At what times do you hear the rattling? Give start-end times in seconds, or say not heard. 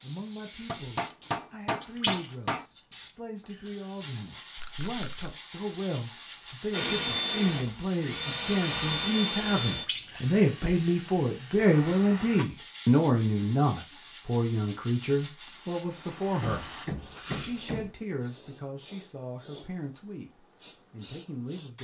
4.5-5.3, 15.4-16.9.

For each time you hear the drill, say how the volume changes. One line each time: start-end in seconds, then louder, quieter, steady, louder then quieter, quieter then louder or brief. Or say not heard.
6.7-12.4 quieter.